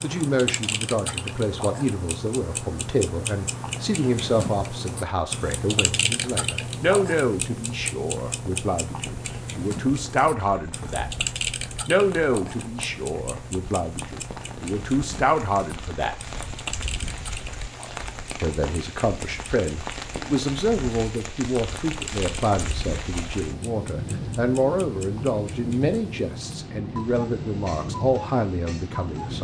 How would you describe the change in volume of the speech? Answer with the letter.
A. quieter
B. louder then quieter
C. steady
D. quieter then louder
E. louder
C.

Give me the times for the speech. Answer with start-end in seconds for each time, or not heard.
0.0-11.1, 11.8-16.1, 18.4-29.3.